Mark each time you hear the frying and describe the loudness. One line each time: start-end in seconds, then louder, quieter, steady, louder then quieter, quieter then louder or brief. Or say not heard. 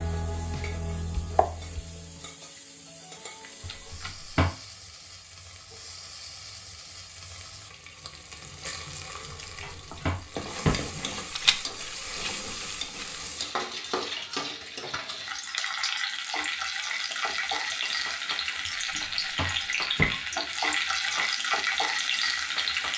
0.0-22.9 louder.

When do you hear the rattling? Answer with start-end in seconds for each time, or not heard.
3.2-4.2, 11.3-13.2, 16.9-18.1.